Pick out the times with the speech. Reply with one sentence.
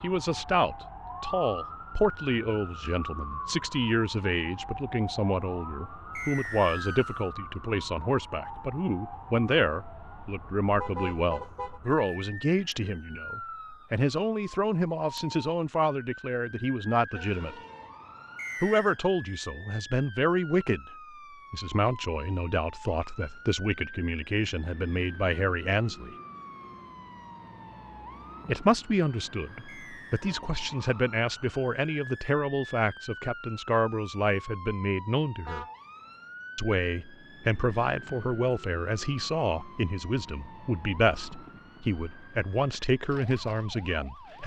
The speech can be heard from 0.0 to 17.6 s, from 18.6 to 20.9 s, from 21.5 to 26.1 s, from 28.4 to 35.6 s and from 36.5 to 44.4 s.